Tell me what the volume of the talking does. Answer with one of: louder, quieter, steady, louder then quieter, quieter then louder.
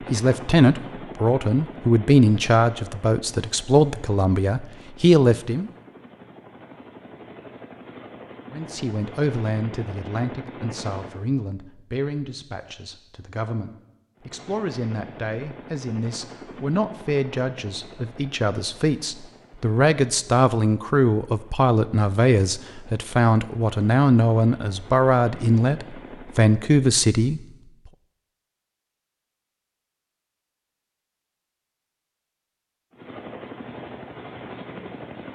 quieter then louder.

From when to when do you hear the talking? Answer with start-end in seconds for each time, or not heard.
0.1-5.7, 8.5-27.4.